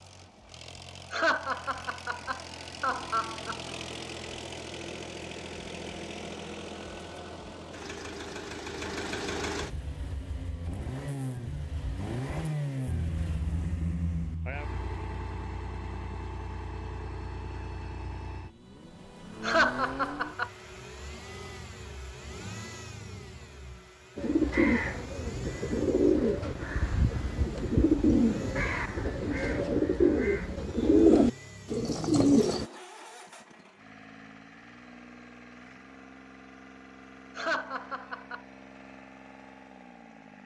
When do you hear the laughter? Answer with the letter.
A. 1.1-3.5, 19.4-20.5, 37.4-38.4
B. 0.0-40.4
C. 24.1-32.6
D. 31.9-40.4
A.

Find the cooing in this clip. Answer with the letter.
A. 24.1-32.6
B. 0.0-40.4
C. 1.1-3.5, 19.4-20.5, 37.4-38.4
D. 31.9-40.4
A.